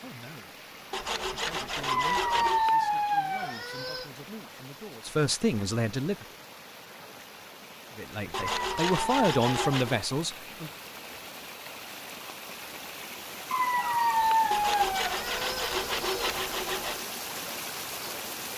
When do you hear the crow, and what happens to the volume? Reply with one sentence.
The crow can't be heard in this clip.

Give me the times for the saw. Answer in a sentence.
You can hear the saw from 0.9 to 2.6 s, from 8.3 to 10.0 s and from 14.5 to 17.1 s.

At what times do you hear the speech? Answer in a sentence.
The speech can be heard from 0.0 to 0.6 s, from 1.3 to 6.2 s and from 8.0 to 10.7 s.